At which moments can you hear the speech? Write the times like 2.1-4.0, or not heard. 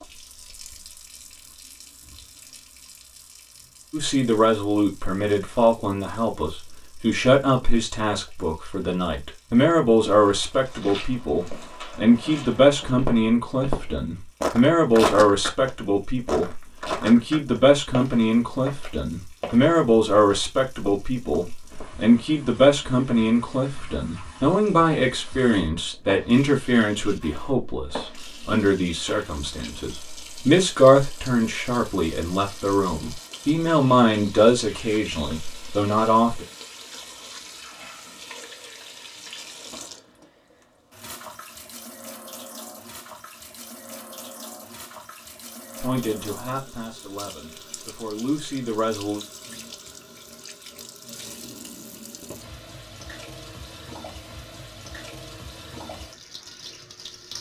3.9-36.5, 45.8-49.2.